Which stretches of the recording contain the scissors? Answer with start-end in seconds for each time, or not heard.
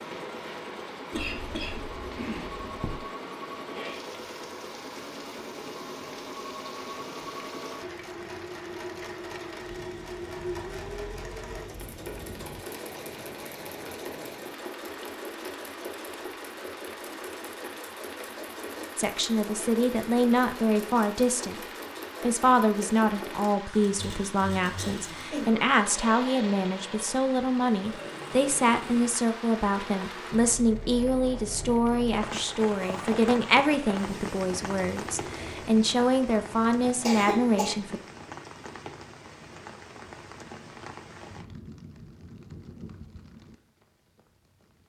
not heard.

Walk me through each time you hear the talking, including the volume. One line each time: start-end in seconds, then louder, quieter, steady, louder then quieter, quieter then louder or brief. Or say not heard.
18.9-21.6 brief
22.2-38.0 steady.